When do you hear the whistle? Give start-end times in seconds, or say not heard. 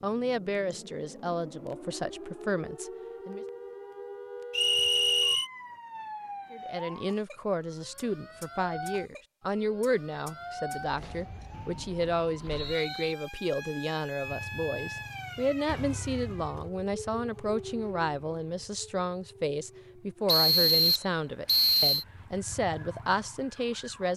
4.5-5.5, 11.5-13.2, 20.2-22.1.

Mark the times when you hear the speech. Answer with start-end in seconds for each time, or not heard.
0.0-3.5, 6.5-24.1.